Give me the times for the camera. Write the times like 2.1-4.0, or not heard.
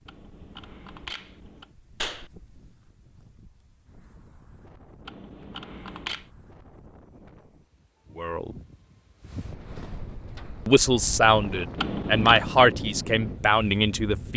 0.1-1.7, 5.0-6.2, 11.8-12.4.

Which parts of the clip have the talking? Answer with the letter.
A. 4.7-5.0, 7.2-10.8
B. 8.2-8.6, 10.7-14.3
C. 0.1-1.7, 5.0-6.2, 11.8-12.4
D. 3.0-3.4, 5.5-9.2
B.